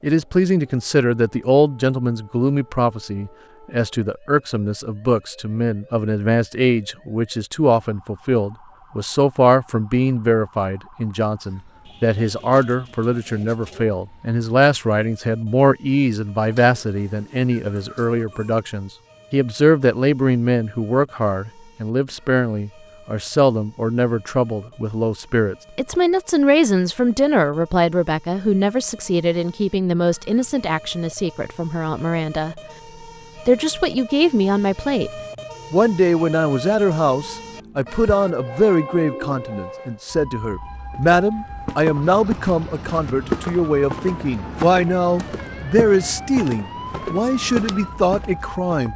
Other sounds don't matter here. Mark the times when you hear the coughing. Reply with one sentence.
The coughing can't be heard in this clip.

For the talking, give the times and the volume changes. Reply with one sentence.
The talking can be heard from 0.0 to 32.5 s, at a steady volume; and from 33.5 to 48.9 s, at a steady volume.